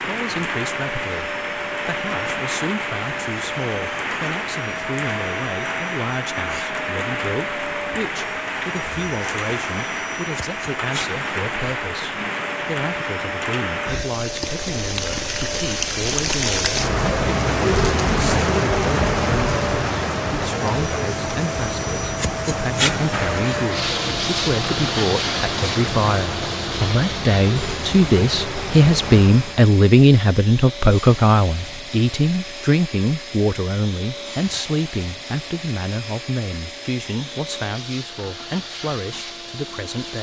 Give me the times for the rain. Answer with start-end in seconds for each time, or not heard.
0.0-29.7.